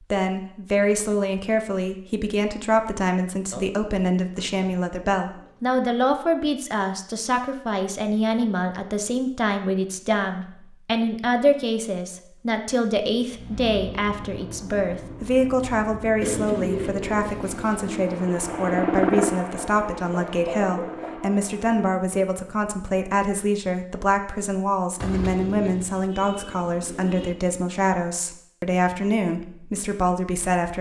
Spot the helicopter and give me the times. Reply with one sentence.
You can hear the helicopter from 13.2 to 21.8 s.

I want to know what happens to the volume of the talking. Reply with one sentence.
The volume of the talking stays about the same.